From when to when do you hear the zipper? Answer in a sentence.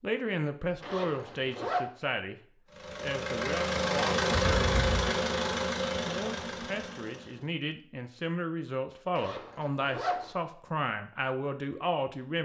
The zipper can be heard from 0.8 to 1.9 s, from 4.5 to 5.0 s and from 9.2 to 10.3 s.